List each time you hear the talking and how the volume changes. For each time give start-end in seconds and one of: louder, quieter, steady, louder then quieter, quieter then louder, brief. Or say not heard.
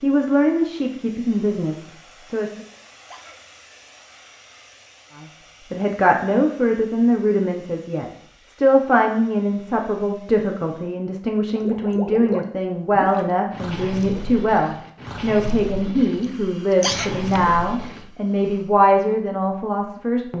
0.0-2.5 brief
5.7-20.3 steady.